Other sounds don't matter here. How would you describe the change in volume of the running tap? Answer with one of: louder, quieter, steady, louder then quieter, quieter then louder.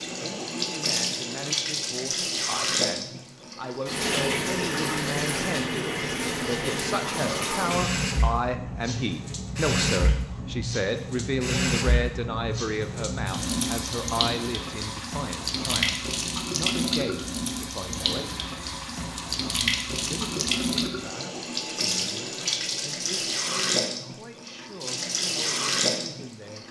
steady.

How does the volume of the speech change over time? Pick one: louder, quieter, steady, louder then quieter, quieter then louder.
louder then quieter.